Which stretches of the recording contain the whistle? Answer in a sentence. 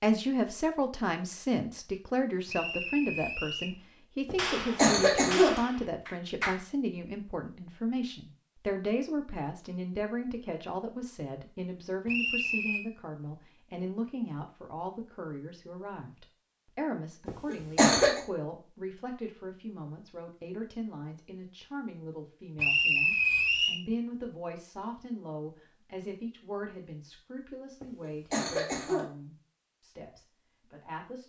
The whistle can be heard from 2.5 to 3.8 s, from 12.1 to 12.8 s and from 22.6 to 23.8 s.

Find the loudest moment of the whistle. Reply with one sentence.
The loudest moment of the whistle is at 23 seconds.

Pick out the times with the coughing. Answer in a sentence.
The coughing can be heard from 4.2 to 5.6 s, from 17.2 to 18.2 s and from 27.8 to 29.1 s.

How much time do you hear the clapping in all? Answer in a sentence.
The clapping can be heard for 2 seconds in total.